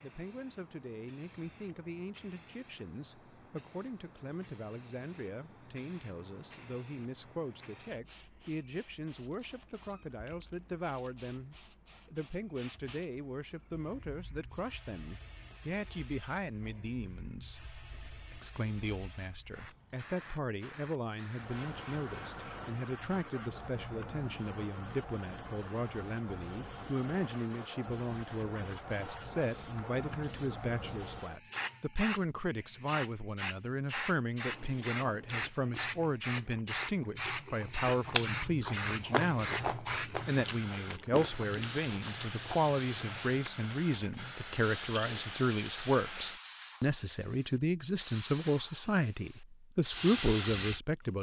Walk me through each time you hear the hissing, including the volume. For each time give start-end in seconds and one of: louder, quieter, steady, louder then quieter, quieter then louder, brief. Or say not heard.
0.0-51.1 louder.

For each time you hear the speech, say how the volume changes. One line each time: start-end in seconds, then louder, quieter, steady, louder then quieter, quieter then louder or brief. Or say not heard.
0.0-51.1 louder.